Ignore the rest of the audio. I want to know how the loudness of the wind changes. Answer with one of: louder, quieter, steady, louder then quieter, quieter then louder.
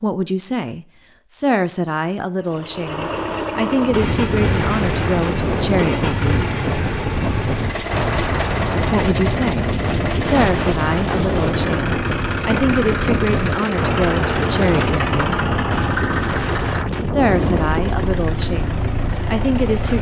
steady.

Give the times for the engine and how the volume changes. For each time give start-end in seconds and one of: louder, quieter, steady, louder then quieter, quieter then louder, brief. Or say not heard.
2.4-19.9 steady.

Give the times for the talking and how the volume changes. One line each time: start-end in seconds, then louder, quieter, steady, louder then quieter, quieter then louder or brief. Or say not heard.
0.0-6.5 steady
8.9-15.4 steady
17.1-19.9 brief.